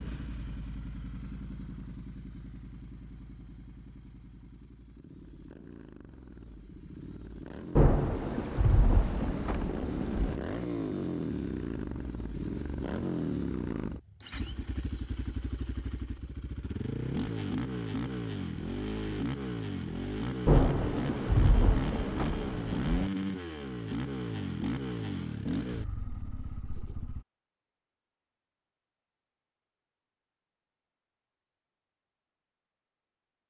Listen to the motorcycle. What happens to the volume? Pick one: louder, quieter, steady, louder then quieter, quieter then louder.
louder.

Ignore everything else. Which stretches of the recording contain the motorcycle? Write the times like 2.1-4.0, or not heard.
0.0-27.2.